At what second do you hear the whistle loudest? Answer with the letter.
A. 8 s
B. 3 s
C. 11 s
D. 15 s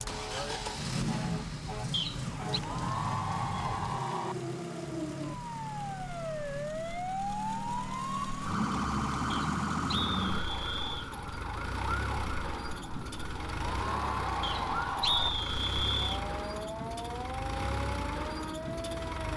D.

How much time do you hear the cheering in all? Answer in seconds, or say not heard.
4 s.